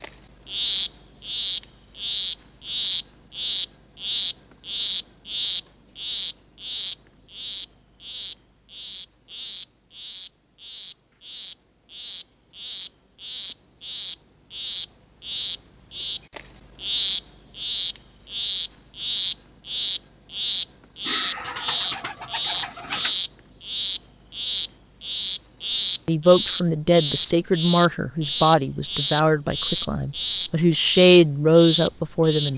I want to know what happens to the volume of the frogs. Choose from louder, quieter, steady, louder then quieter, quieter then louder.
quieter then louder.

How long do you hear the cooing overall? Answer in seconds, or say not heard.
2 s.